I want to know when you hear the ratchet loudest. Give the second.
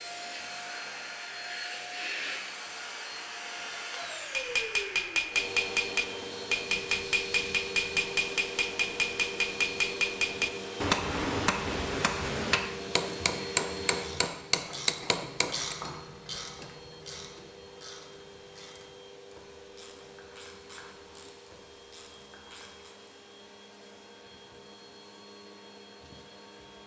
16 s.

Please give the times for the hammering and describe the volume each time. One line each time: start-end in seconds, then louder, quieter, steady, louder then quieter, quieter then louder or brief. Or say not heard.
4.3-15.8 steady.